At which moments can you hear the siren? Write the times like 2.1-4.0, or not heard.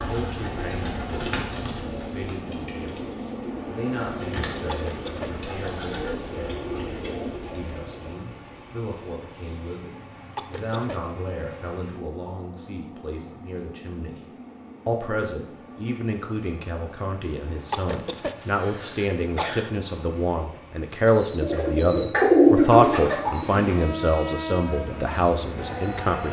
not heard.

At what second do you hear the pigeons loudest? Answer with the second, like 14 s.
22 s.